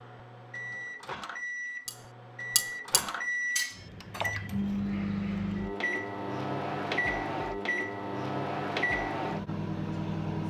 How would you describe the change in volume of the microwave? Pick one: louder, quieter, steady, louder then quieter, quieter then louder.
louder.